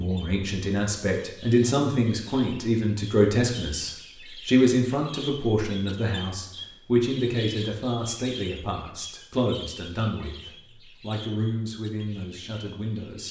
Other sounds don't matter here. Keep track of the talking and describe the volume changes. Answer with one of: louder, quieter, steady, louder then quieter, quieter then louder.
quieter.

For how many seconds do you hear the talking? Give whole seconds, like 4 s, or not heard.
13 s.